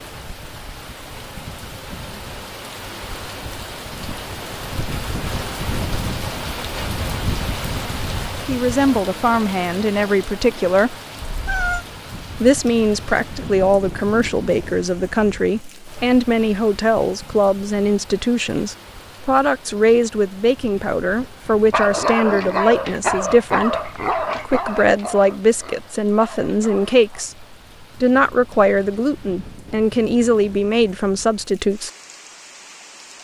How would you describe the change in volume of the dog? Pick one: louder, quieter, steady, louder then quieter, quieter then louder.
quieter.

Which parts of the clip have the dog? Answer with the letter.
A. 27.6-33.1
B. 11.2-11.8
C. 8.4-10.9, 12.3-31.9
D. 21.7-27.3
D.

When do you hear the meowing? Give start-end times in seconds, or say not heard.
11.2-11.8.